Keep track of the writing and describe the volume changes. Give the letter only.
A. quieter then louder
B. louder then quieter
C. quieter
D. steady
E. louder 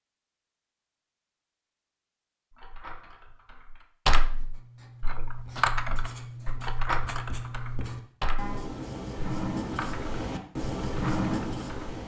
E.